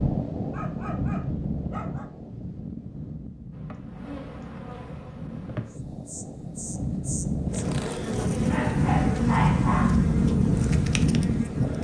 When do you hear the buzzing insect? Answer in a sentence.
The buzzing insect can be heard from 3.5 to 11.7 s.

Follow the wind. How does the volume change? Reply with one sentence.
The volume of the wind goes down, then up.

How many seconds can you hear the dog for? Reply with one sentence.
The dog can be heard for 3 seconds in total.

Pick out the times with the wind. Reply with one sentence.
The wind can be heard from 0.0 to 11.7 s.